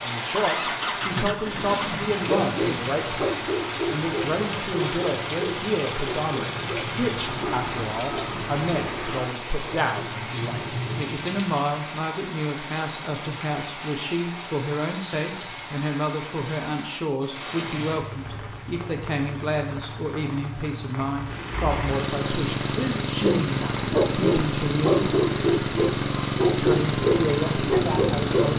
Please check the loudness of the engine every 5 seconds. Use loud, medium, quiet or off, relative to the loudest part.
medium, medium, off, off, loud, loud.